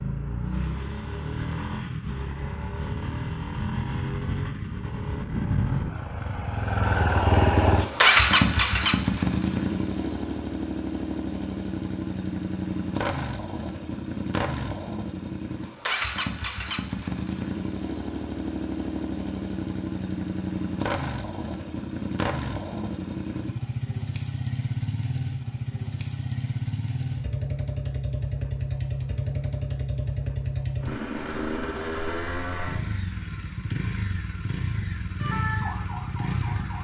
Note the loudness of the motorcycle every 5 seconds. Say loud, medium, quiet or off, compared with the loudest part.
medium, loud, medium, medium, medium, medium, medium, medium.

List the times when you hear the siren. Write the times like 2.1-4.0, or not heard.
35.2-36.7.